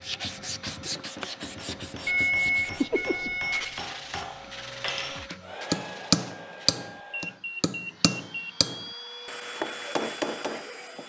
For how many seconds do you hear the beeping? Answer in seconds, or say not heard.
3 s.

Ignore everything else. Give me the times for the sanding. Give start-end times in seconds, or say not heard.
0.0-6.8.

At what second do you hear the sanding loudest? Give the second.
3 s.